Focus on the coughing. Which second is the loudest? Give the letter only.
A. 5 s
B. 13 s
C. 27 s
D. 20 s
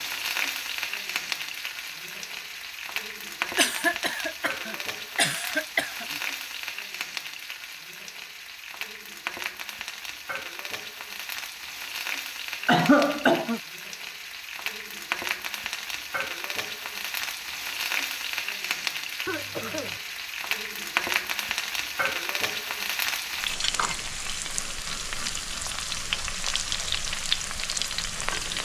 B.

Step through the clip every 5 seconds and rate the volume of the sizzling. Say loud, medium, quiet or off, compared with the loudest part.
loud, medium, medium, loud, loud, loud.